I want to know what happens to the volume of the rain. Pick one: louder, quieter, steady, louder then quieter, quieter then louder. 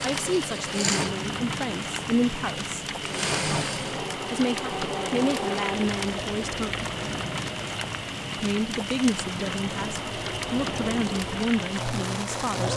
steady.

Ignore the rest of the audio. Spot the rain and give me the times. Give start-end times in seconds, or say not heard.
0.0-12.7.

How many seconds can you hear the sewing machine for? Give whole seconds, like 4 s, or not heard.
13 s.